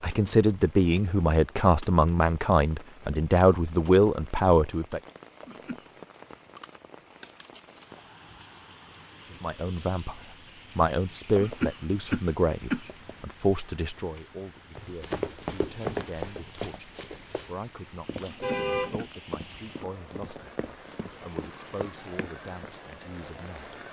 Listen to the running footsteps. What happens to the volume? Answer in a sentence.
The volume of the running footsteps goes down.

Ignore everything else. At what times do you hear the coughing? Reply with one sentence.
You can hear the coughing from 5.4 to 6.0 s, from 11.3 to 13.2 s and from 18.2 to 19.2 s.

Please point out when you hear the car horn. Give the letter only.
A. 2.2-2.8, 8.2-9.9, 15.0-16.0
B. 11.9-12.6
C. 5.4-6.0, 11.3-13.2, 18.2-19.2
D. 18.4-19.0
D.